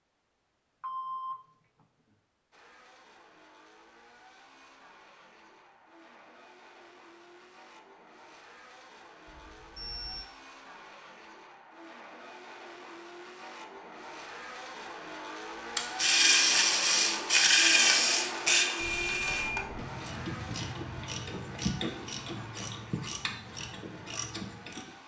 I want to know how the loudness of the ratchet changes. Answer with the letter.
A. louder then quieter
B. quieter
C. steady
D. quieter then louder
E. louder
B.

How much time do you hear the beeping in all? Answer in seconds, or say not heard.
3 s.